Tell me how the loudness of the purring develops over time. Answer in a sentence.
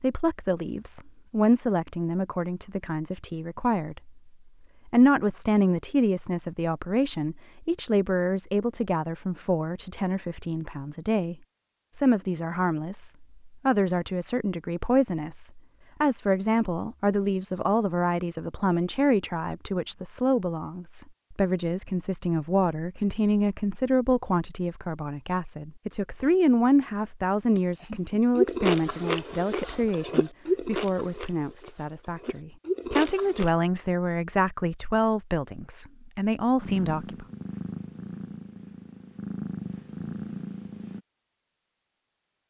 The loudness of the purring goes down, then up.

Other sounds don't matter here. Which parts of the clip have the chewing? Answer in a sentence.
You can hear the chewing from 27.6 to 33.5 s.